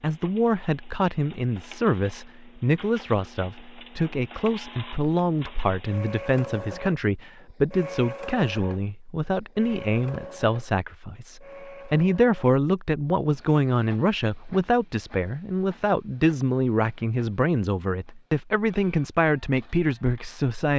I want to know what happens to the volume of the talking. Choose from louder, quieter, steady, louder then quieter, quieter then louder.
steady.